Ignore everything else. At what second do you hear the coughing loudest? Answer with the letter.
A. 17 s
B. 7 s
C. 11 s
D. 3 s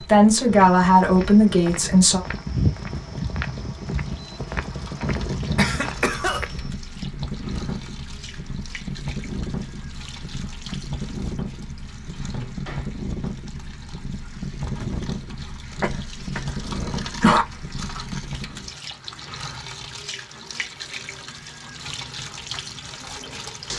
A.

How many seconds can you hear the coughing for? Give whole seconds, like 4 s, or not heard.
3 s.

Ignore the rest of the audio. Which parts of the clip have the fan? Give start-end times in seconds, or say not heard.
0.0-18.8.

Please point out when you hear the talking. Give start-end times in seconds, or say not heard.
0.0-2.2.